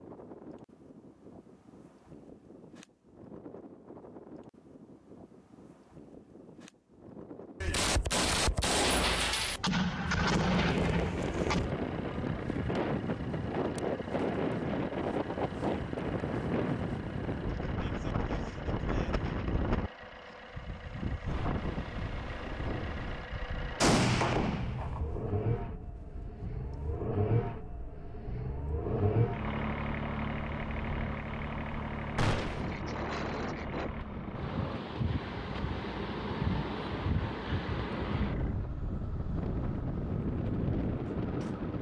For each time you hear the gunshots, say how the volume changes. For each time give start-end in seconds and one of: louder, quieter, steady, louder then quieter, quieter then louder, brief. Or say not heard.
7.6-11.6 steady
23.8-25.2 brief
32.1-32.8 brief.